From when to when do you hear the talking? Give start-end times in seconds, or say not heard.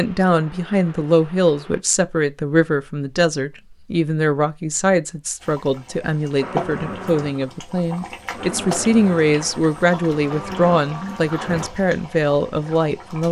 0.0-13.2.